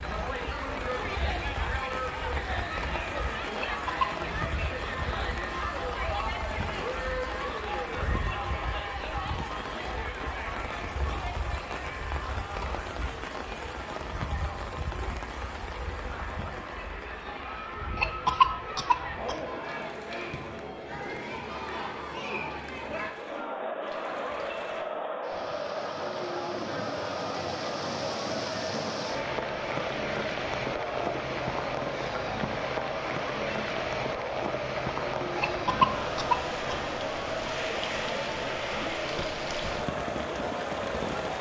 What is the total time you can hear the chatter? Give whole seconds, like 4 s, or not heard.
41 s.